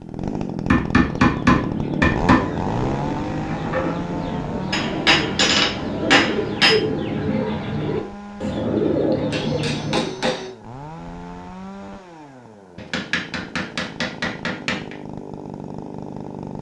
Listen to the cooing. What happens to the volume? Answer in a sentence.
The loudness of the cooing goes up.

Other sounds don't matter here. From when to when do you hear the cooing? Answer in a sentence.
You can hear the cooing from 1.1 to 10.1 s.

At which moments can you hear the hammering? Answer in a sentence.
You can hear the hammering from 0.7 to 2.5 s, from 4.7 to 6.8 s, from 9.3 to 10.5 s and from 12.8 to 14.8 s.